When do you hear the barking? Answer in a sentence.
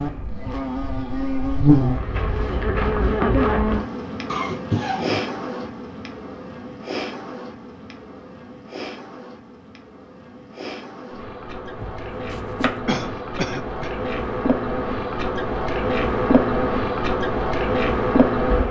The barking can't be heard in this clip.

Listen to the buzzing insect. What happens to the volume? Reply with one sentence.
The volume of the buzzing insect goes down, then up.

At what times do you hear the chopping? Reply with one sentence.
The chopping can be heard from 11.8 to 12.8 s.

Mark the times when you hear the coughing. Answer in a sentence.
The coughing can be heard from 4.2 to 5.7 s and from 12.8 to 13.9 s.